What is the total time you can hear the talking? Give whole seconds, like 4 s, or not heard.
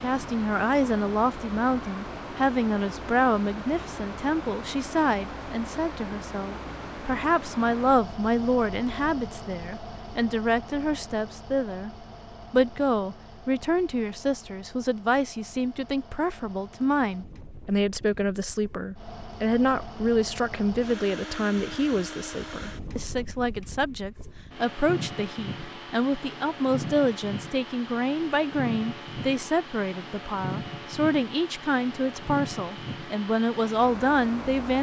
34 s.